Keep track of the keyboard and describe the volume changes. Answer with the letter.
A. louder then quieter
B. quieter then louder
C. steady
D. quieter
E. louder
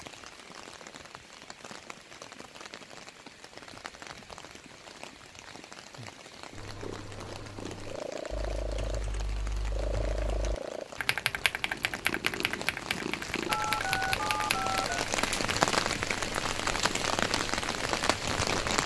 E.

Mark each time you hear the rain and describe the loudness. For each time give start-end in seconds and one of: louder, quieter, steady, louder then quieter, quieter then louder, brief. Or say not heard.
0.0-18.8 louder.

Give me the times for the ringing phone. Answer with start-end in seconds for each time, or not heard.
13.4-14.9.